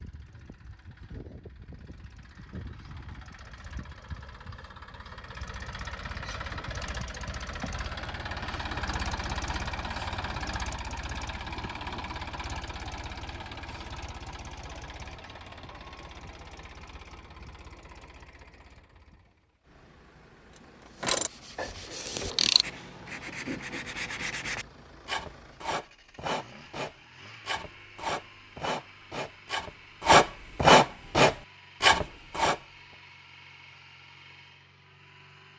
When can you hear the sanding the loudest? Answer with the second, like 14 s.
31 s.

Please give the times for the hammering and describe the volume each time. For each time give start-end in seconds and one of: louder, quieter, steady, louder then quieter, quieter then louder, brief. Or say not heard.
not heard.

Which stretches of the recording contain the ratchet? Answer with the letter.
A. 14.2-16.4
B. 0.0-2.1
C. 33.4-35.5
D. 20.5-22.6
D.